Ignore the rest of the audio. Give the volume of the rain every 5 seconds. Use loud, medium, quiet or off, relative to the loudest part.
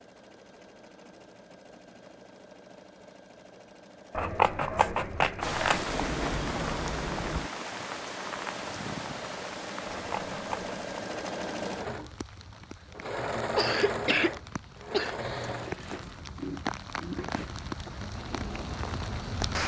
off, loud, medium, loud.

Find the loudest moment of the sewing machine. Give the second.
14 s.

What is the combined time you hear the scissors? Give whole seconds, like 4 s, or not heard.
3 s.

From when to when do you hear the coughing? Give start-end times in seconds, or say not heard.
13.5-15.6.